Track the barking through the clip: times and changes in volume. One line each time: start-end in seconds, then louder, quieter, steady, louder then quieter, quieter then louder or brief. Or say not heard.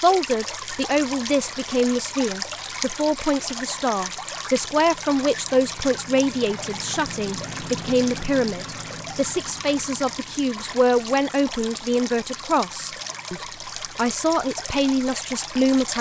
not heard.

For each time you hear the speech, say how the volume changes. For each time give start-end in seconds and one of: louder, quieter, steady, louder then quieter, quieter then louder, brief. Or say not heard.
0.0-15.9 steady.